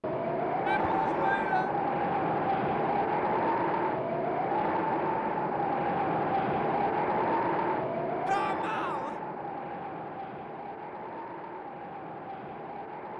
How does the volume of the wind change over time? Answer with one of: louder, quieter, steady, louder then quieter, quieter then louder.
quieter.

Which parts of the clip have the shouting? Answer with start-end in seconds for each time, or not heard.
0.7-1.7, 8.2-9.2.